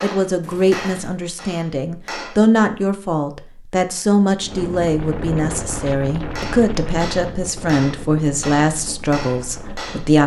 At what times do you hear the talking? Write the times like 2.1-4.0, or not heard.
0.0-10.2.